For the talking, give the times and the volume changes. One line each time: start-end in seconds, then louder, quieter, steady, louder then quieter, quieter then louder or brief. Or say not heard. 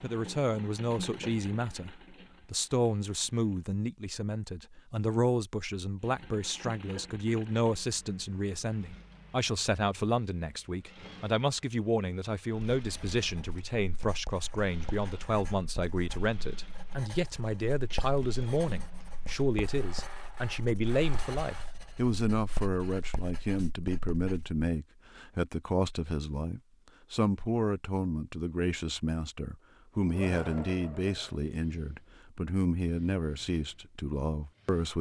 0.0-34.9 steady.